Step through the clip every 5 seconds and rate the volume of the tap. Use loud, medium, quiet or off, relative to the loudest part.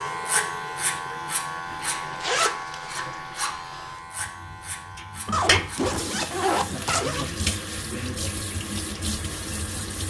quiet, loud.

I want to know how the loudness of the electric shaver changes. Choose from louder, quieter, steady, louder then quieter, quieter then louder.
quieter.